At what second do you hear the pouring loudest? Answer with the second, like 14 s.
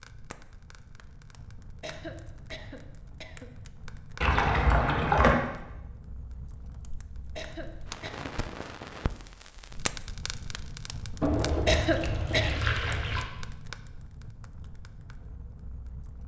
5 s.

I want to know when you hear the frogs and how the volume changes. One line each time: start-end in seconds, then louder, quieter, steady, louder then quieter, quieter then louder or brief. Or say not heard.
not heard.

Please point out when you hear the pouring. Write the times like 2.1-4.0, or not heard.
4.2-5.5, 11.2-13.2.